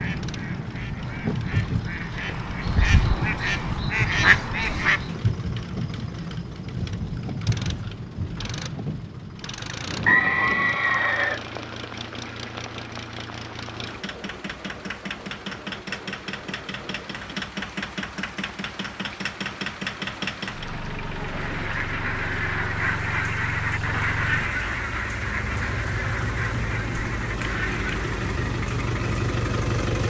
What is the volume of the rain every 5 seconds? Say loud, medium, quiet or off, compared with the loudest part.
loud, loud, medium, quiet, quiet, quiet.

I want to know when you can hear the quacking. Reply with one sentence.
The quacking can be heard from 0.0 to 5.2 s and from 21.2 to 28.2 s.